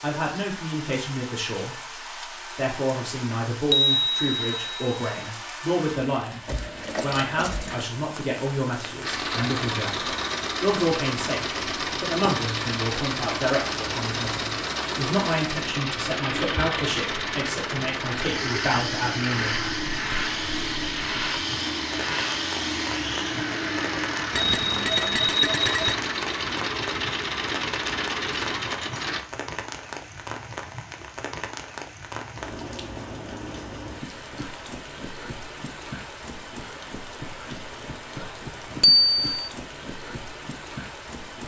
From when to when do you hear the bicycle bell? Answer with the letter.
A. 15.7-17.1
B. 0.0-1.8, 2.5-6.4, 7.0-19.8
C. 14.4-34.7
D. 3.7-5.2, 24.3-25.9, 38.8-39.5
D.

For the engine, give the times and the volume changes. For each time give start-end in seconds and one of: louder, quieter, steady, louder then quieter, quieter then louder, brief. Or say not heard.
9.0-29.2 steady.